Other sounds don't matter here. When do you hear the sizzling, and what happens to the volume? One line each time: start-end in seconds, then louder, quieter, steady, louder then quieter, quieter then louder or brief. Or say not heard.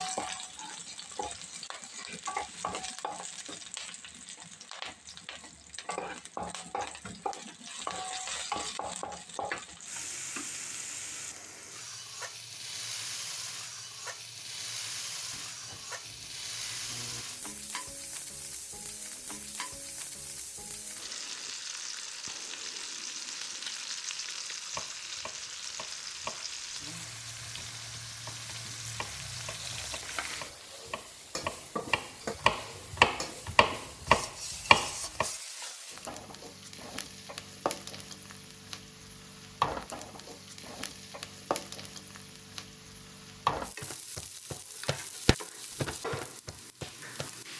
0.0-47.5 steady.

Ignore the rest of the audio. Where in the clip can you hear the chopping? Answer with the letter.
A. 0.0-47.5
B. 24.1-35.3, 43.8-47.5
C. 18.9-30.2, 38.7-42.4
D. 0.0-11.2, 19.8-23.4
B.